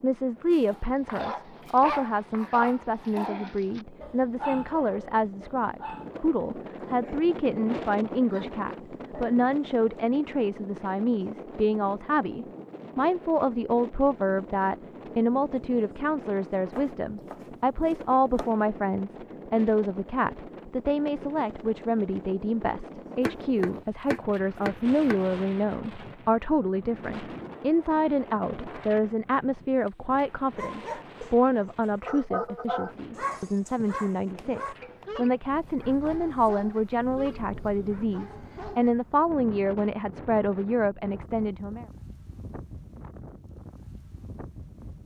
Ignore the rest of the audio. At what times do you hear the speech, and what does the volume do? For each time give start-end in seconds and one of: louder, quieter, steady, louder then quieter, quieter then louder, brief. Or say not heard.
0.0-41.9 steady.